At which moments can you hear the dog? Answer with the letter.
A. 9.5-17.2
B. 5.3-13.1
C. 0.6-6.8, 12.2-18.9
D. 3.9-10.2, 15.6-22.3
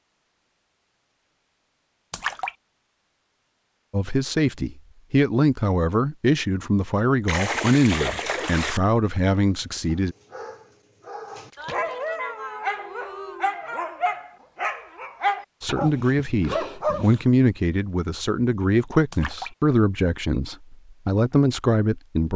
A.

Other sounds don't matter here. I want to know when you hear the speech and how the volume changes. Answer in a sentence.
The speech can be heard from 3.9 to 10.2 s, at a steady volume; and from 15.6 to 22.3 s, at a steady volume.